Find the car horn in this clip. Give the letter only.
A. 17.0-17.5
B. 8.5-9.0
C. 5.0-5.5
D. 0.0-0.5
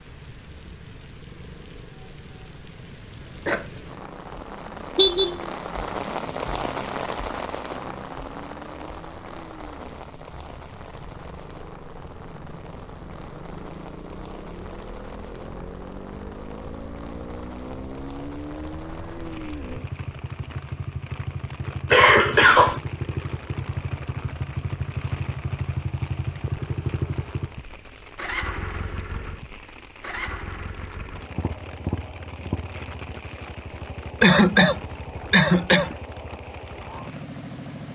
C.